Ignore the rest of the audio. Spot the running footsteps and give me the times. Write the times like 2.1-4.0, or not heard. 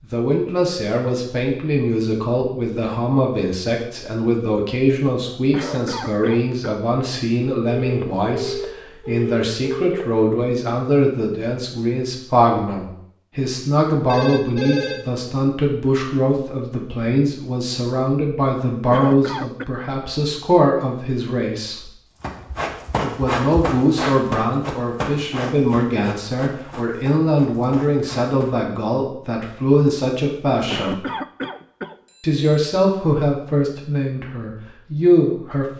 22.2-28.6.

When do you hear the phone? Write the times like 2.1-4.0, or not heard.
7.6-10.1, 14.1-15.0, 32.0-32.6.